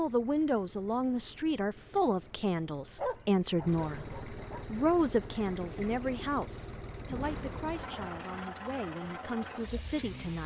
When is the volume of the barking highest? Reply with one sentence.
The volume of the barking peaks at 3 seconds.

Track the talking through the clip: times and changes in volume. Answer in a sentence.
You can hear the talking from 0.0 to 10.4 s, getting quieter.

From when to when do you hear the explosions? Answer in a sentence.
The explosions can be heard from 7.0 to 8.4 s.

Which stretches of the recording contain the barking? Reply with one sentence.
The barking can be heard from 3.0 to 4.7 s.